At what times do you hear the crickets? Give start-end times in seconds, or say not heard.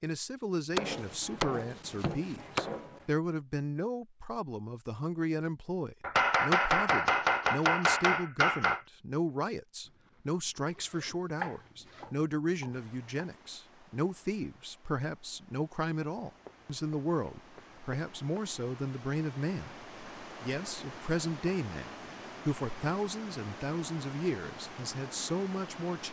not heard.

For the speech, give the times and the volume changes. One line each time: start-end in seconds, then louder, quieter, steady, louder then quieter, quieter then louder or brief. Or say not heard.
0.0-26.0 steady.